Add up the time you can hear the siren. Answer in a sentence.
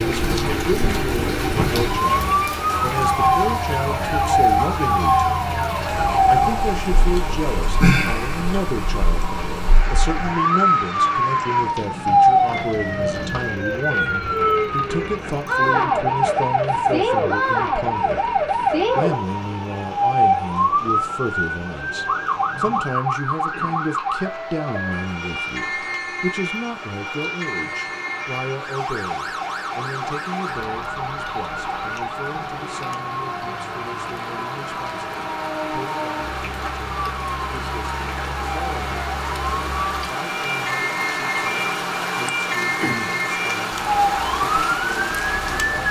You can hear the siren for 46 seconds altogether.